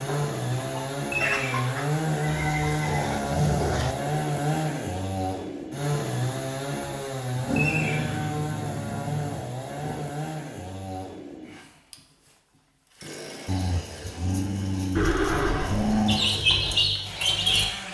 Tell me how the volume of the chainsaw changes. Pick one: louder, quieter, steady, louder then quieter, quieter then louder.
quieter.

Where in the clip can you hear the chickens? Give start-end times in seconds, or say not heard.
0.0-1.9, 16.1-17.6.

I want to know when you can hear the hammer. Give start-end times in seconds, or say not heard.
not heard.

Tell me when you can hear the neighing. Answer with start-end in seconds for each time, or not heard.
1.1-3.1, 7.5-8.4, 14.9-16.0.